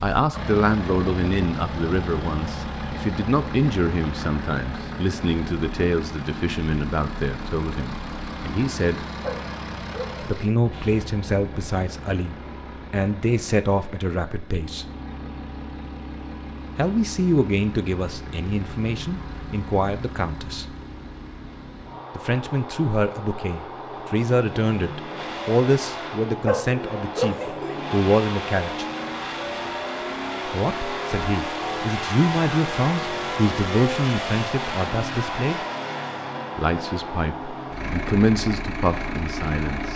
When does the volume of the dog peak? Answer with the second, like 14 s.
27 s.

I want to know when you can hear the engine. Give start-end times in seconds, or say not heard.
0.0-39.9.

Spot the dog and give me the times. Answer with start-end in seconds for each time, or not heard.
9.2-10.4, 26.4-27.8.